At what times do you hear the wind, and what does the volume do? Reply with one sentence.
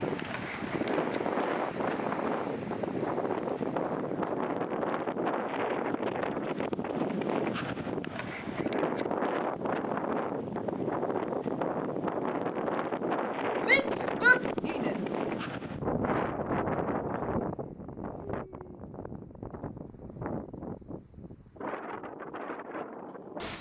The wind can be heard from 0.0 to 23.5 s, getting quieter.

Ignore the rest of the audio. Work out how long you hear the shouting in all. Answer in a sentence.
The shouting can be heard for 2 seconds in total.